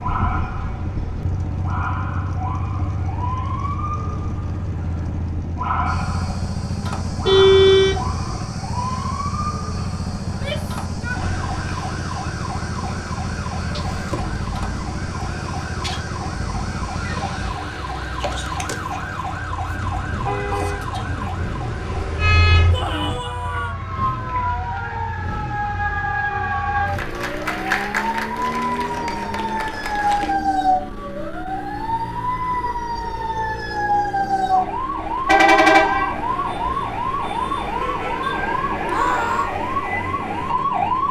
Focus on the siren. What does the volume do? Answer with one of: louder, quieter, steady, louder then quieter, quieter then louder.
louder.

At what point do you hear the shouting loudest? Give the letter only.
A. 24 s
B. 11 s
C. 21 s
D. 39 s
D.